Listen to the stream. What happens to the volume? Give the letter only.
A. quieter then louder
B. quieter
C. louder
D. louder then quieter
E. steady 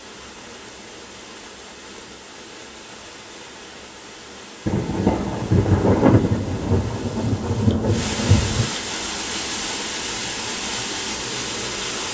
C.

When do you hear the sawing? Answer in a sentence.
The sawing can't be heard in this clip.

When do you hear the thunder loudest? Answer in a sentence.
The loudest moment of the thunder is at 6 seconds.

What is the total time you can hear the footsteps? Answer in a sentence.
The footsteps can't be heard in this clip.